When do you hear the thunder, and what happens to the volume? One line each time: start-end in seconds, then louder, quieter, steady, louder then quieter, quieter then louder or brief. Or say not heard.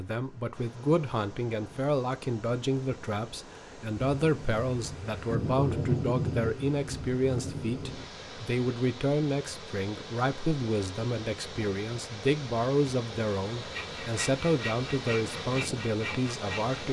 4.0-8.1 louder then quieter.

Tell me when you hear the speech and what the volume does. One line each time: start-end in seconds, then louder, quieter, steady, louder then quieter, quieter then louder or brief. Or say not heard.
0.0-16.8 steady.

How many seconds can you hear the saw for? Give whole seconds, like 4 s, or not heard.
3 s.